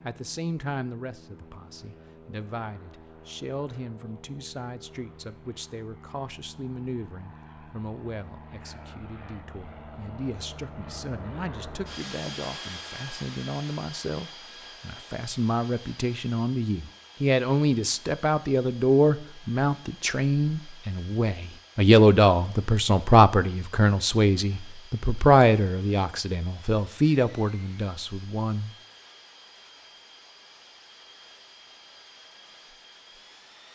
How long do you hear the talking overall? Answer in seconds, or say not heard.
29 s.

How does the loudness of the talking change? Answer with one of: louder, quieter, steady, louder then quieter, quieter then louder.
louder.